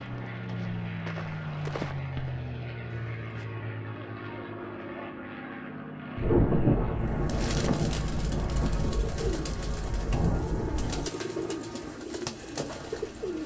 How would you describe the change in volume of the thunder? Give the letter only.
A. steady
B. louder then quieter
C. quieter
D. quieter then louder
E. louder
D.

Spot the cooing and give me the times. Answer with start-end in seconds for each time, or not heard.
7.0-13.4.